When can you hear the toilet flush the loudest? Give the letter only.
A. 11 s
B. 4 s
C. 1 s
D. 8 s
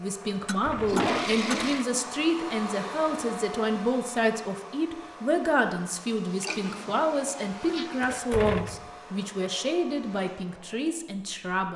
C.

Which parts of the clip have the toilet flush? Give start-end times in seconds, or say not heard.
0.5-1.9, 6.3-8.3.